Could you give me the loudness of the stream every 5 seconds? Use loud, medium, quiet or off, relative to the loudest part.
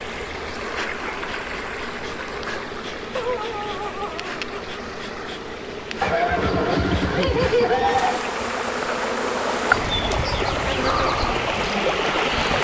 medium, loud, loud.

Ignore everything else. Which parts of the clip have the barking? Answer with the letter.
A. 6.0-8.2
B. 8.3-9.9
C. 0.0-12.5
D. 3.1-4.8
D.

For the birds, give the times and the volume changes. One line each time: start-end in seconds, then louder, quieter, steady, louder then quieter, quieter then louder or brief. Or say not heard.
not heard.